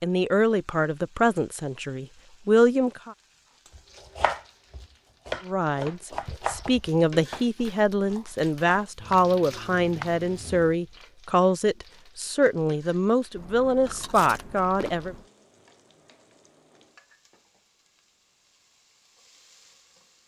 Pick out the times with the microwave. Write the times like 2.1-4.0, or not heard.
not heard.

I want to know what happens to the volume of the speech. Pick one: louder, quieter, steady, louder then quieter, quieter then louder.
steady.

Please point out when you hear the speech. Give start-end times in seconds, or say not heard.
0.0-3.1, 5.5-15.2.